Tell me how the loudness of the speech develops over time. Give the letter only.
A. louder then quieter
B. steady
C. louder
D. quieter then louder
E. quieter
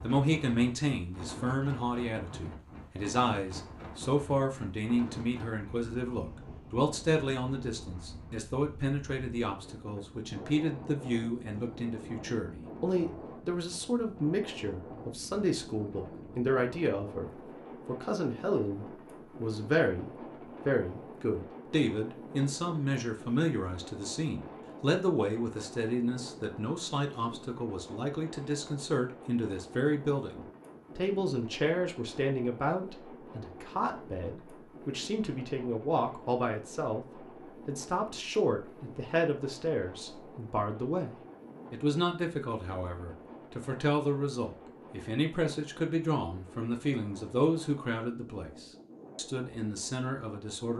B.